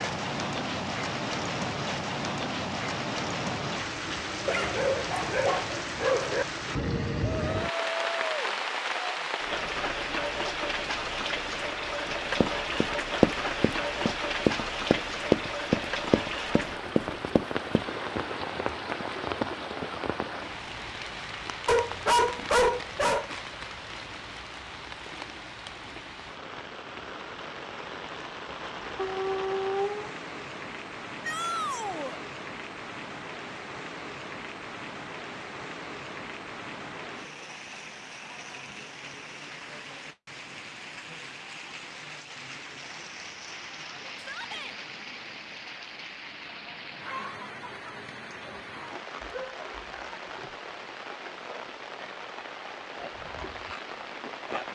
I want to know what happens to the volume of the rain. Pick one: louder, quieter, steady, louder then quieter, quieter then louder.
quieter.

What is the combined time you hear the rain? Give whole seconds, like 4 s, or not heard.
55 s.